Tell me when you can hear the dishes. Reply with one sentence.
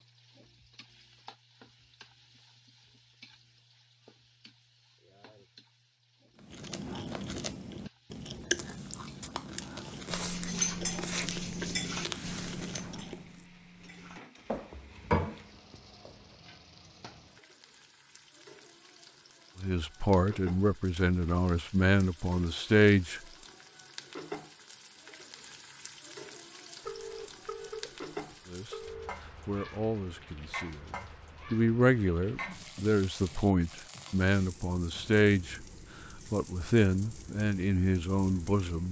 The dishes can be heard from 9.7 to 16.1 s.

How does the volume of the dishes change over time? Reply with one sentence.
The volume of the dishes goes down, then up.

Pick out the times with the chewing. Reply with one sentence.
You can hear the chewing from 6.3 to 13.4 s.